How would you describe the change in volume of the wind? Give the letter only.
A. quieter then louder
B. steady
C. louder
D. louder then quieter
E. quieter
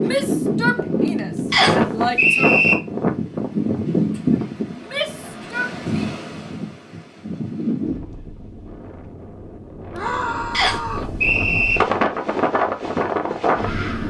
A.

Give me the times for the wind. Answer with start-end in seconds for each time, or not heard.
0.0-14.0.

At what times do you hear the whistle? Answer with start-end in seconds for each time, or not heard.
1.5-2.8, 10.5-11.8.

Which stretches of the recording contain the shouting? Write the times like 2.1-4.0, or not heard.
0.1-2.5, 4.8-6.2, 9.9-11.1.